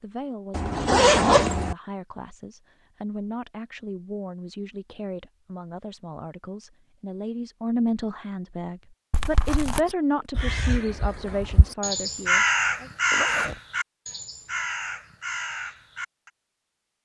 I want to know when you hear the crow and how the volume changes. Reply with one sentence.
You can hear the crow from 9.8 to 16.3 s, getting louder then quieter.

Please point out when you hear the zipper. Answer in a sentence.
You can hear the zipper from 0.5 to 1.8 s, from 9.1 to 9.8 s and from 13.1 to 13.6 s.